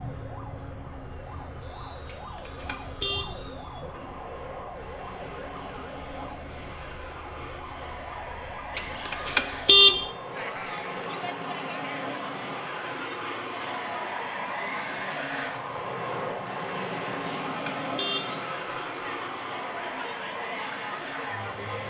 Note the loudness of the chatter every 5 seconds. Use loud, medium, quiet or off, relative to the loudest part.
off, off, loud, loud, loud.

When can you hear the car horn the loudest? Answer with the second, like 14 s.
10 s.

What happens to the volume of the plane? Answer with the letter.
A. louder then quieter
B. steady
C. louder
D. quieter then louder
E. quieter
C.